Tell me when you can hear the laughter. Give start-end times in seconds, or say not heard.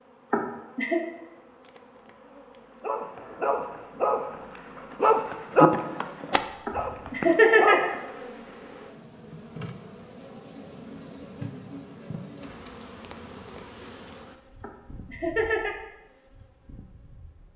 0.3-1.0, 6.7-7.9, 14.6-15.8.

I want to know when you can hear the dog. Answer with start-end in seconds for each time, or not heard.
2.8-8.0.